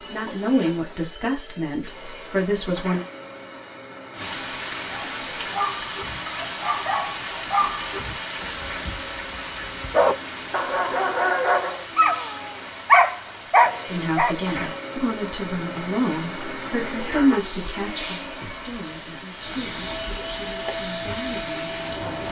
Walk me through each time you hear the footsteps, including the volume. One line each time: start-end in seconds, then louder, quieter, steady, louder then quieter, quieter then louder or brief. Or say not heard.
not heard.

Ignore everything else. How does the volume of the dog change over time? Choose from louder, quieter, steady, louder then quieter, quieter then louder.
louder.